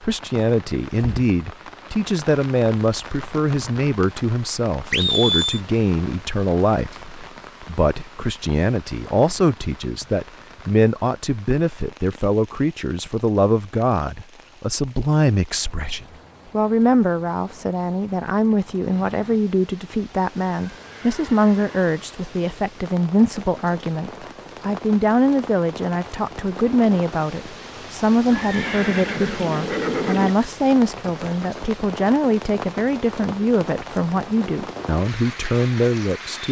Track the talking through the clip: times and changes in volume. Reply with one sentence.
You can hear the talking from 0.0 to 36.4 s, at a steady volume.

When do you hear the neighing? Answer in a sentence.
The neighing can be heard from 4.9 to 5.6 s, from 20.6 to 21.8 s and from 28.3 to 30.4 s.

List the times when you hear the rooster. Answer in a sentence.
You can't hear the rooster here.